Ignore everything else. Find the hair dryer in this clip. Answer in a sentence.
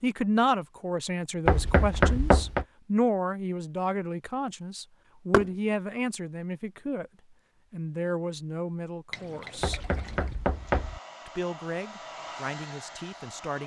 You can hear the hair dryer from 10.4 to 13.6 s.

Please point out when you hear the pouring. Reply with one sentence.
You can hear the pouring from 9.1 to 10.4 s.